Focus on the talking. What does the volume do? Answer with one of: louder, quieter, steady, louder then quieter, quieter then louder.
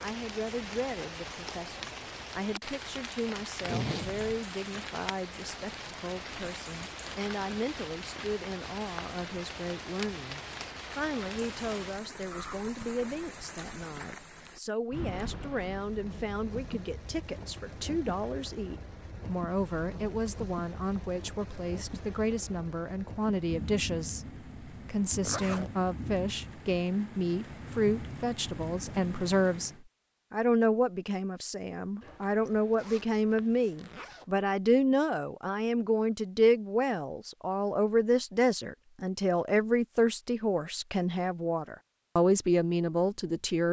louder.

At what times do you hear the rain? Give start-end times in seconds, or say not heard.
0.0-29.8.